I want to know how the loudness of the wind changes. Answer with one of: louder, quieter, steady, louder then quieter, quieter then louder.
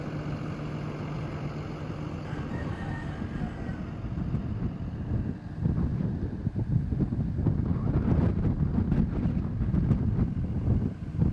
louder.